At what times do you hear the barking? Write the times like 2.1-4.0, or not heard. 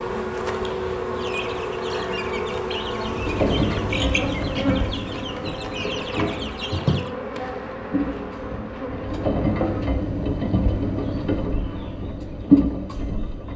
not heard.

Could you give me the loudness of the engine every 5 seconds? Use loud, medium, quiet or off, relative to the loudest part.
loud, medium, loud.